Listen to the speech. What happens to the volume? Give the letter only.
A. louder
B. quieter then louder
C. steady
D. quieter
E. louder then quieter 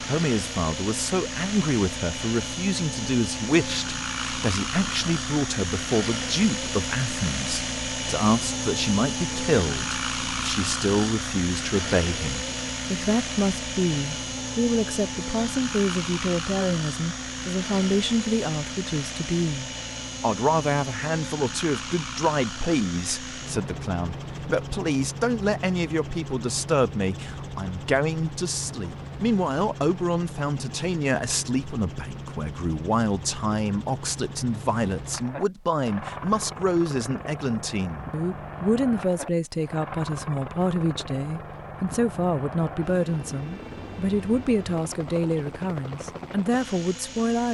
C.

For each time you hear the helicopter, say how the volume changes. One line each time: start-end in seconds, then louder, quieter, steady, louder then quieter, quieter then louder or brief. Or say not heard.
0.0-47.4 quieter.